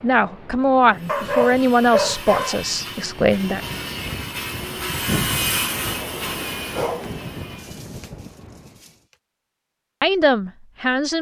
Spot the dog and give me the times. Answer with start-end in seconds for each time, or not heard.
1.1-2.6, 6.7-8.9.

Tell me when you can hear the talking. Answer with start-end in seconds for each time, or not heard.
0.0-3.6, 10.0-11.1.